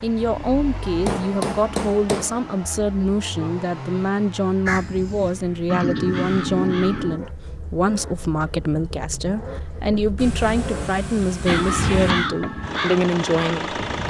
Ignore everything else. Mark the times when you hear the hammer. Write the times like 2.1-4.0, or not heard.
1.1-2.4, 10.2-12.3.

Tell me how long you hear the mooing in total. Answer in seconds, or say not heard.
not heard.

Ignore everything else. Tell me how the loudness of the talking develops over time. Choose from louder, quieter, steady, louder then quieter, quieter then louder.
steady.